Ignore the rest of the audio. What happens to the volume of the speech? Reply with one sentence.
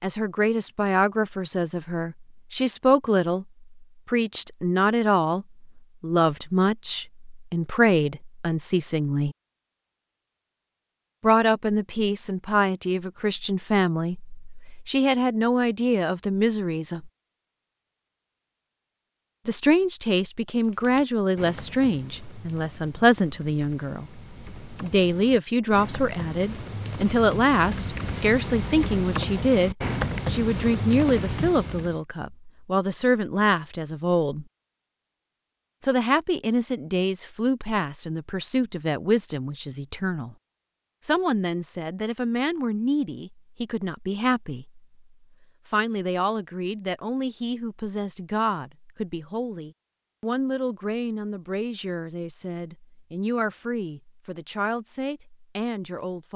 The volume of the speech goes down.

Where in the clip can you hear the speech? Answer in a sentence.
You can hear the speech from 0.0 to 9.3 s, from 11.2 to 17.1 s, from 19.4 to 34.5 s, from 35.8 to 40.4 s, from 41.0 to 44.9 s and from 45.7 to 56.3 s.